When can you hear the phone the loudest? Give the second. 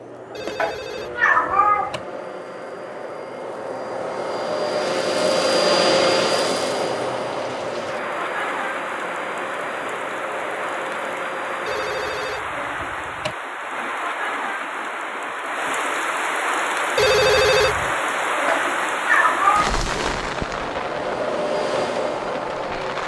17 s.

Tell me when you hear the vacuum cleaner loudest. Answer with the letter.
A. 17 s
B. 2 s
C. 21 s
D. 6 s
D.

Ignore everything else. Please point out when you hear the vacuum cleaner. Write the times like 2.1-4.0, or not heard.
0.0-12.2, 16.6-23.0.